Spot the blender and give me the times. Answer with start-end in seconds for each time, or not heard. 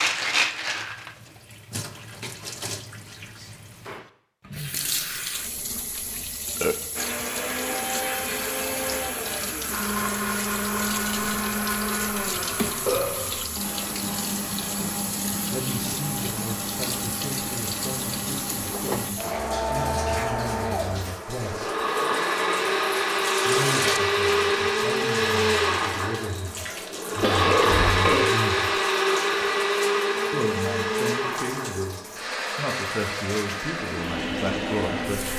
7.0-35.3.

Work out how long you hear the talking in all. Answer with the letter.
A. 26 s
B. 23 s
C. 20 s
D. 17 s
D.